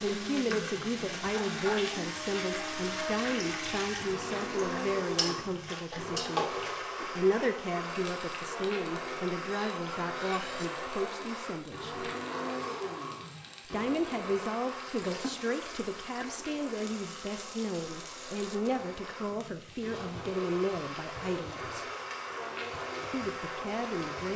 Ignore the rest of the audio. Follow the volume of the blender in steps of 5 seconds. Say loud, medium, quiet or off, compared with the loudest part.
loud, loud, loud, medium, loud.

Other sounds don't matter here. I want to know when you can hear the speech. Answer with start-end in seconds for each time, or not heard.
0.0-12.1, 13.7-21.9, 23.1-24.3.